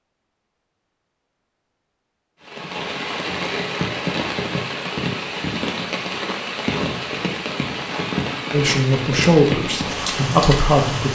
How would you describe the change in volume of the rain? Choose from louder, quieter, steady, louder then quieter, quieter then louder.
steady.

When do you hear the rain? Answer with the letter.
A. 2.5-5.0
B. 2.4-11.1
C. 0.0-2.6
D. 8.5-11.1
B.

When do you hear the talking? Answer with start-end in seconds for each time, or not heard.
8.5-11.1.